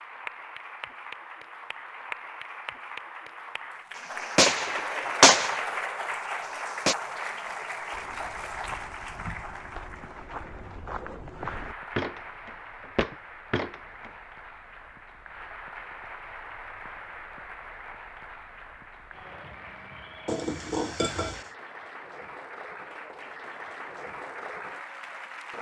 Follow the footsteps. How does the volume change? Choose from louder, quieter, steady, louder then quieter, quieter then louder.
louder.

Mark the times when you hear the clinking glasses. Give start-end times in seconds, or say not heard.
20.2-21.5.